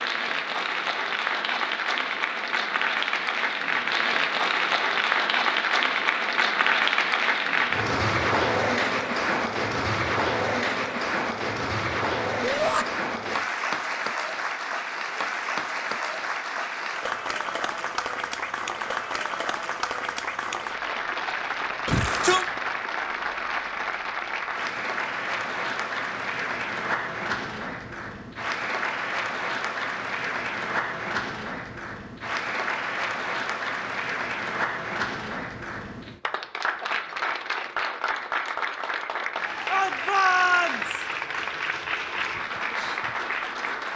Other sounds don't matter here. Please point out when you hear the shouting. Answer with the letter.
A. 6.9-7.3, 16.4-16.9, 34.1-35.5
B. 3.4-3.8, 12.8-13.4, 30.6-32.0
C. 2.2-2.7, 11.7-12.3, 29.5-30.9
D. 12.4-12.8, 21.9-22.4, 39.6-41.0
D.